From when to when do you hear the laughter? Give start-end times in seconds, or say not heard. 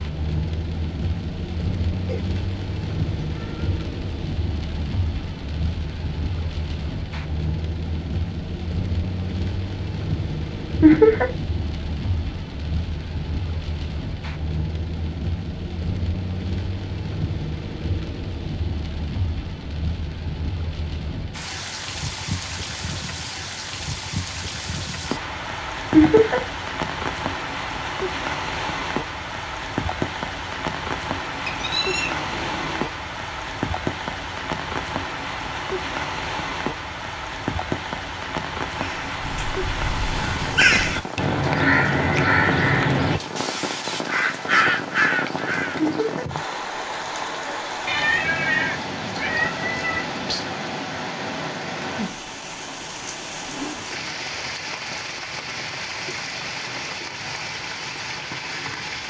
10.8-11.2, 25.9-26.4, 45.8-46.2.